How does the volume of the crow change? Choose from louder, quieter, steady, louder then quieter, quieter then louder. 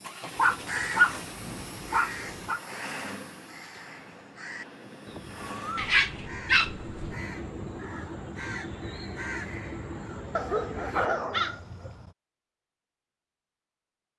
quieter then louder.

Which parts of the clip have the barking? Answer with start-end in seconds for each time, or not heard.
0.3-2.6, 5.8-7.2, 10.3-11.9.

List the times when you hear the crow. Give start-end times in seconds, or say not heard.
0.2-12.2.